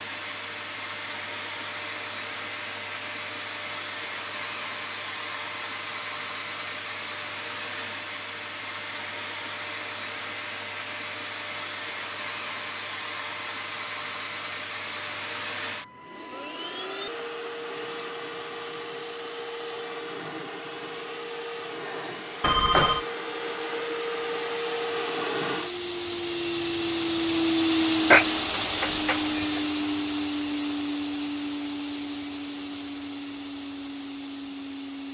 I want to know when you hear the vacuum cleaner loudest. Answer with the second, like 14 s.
28 s.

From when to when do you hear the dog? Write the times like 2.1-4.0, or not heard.
not heard.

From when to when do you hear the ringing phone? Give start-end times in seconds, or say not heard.
22.4-23.1.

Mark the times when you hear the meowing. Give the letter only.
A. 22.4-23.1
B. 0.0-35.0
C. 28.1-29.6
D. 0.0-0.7
C.